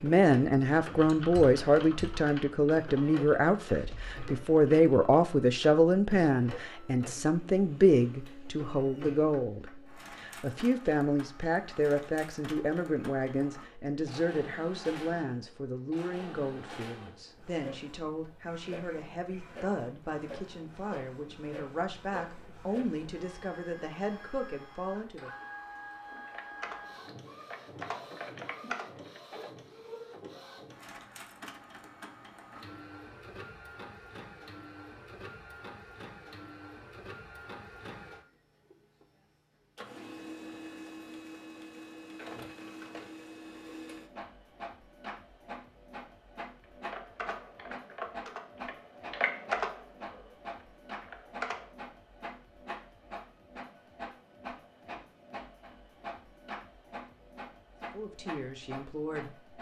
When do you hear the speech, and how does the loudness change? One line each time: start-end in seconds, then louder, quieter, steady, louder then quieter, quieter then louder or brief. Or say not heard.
0.0-25.3 quieter
57.9-59.3 brief.